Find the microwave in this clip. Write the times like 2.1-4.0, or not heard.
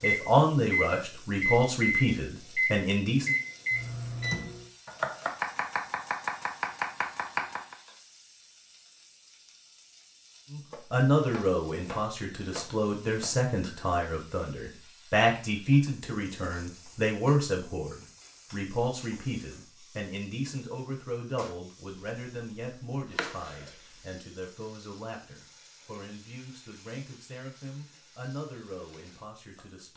0.0-4.7.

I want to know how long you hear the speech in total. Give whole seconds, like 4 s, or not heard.
23 s.